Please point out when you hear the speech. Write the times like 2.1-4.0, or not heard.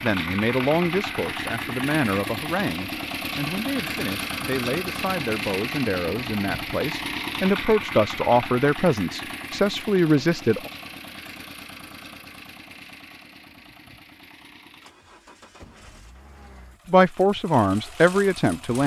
0.0-10.7, 16.9-18.8.